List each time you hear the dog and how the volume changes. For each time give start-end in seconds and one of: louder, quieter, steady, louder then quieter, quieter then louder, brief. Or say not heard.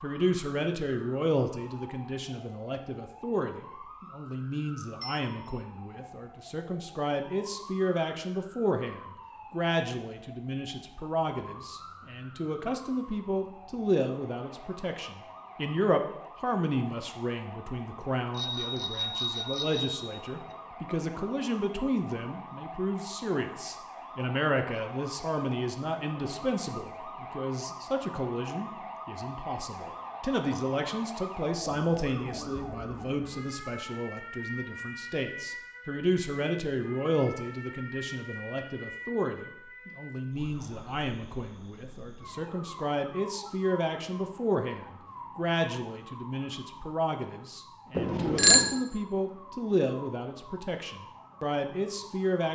not heard.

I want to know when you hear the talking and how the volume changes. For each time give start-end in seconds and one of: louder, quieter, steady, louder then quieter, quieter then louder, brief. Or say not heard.
0.0-52.4 steady.